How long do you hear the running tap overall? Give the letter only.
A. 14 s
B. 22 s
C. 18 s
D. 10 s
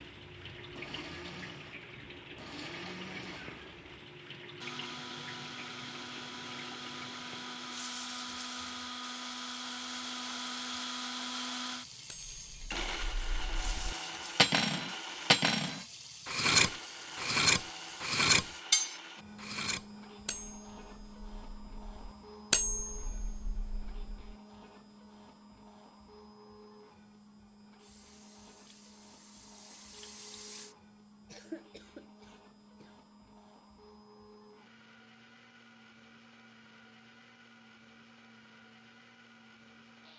B.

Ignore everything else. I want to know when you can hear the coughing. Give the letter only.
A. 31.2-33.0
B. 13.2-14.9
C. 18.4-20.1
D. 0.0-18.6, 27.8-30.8
A.